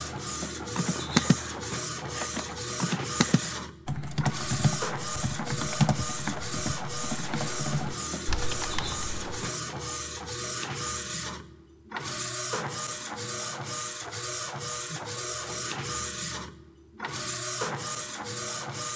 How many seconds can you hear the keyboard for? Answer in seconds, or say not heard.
9 s.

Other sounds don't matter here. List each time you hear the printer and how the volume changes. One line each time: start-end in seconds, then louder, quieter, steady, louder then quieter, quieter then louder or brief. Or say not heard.
0.0-18.9 steady.